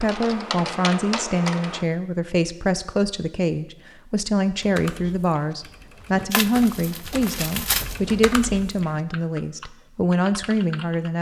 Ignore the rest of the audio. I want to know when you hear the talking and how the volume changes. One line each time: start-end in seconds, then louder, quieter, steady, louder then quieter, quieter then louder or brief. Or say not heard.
0.0-11.1 steady.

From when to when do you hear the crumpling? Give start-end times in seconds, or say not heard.
6.3-8.0.